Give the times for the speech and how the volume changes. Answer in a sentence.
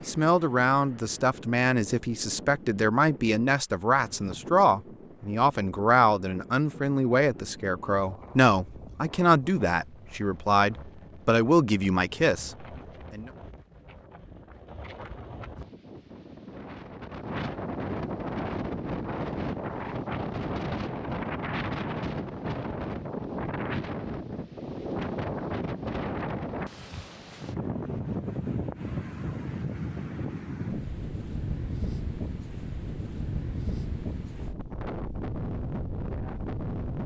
The speech can be heard from 0.1 to 13.3 s, at a steady volume.